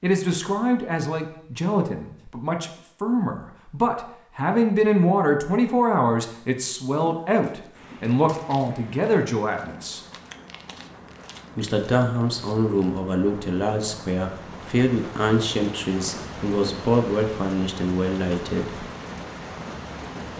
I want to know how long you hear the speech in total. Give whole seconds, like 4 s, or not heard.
17 s.